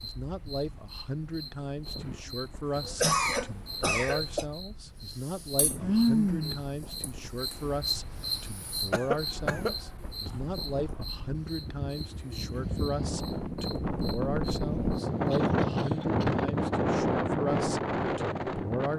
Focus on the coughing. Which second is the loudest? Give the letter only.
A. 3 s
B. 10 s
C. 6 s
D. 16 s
A.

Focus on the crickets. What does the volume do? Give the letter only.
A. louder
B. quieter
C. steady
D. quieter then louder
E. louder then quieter
E.